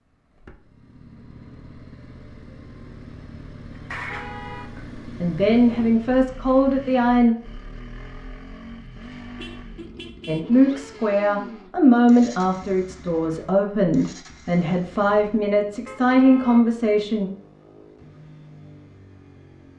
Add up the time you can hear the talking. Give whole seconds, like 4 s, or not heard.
9 s.